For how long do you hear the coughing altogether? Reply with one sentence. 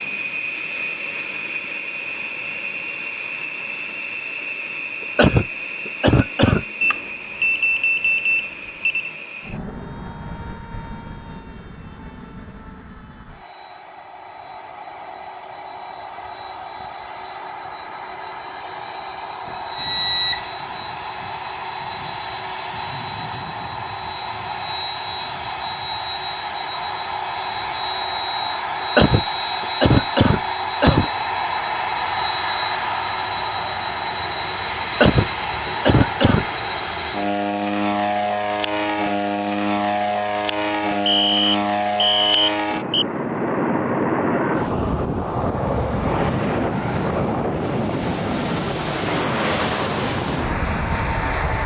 The coughing can be heard for 5 seconds in total.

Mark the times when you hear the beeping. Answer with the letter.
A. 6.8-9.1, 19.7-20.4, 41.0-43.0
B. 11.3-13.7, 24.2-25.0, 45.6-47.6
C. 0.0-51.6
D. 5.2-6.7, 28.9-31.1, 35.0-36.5
A.